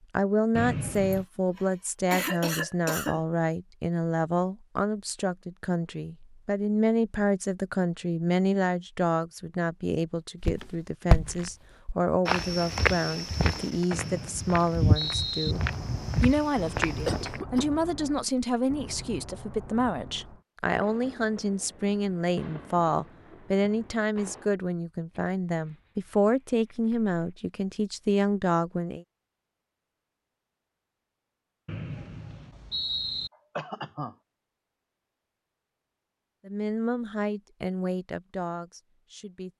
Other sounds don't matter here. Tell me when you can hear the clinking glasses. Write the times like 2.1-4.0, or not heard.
not heard.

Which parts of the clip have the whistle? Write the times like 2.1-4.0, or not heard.
0.6-1.2, 13.9-15.6, 31.6-33.3.